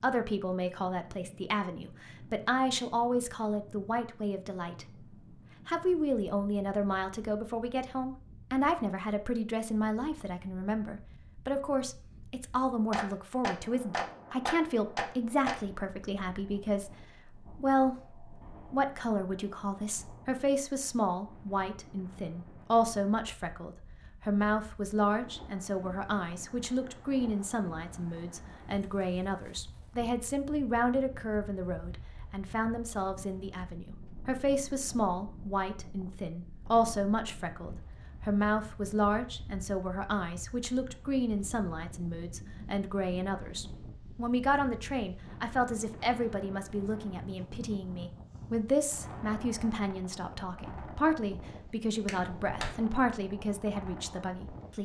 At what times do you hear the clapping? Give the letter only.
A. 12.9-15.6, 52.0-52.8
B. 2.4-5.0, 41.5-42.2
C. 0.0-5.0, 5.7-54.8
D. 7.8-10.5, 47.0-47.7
A.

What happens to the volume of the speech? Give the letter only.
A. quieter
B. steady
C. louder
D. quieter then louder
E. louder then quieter
B.